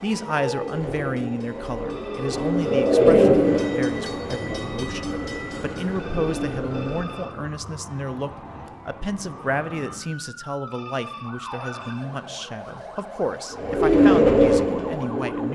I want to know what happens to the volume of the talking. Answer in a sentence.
The volume of the talking stays about the same.